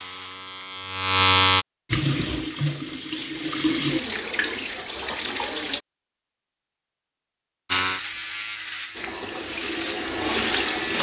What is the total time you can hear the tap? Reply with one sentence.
The tap can be heard for 6 seconds in total.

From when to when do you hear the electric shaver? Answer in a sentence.
The electric shaver can be heard from 0.0 to 1.6 s and from 7.7 to 10.9 s.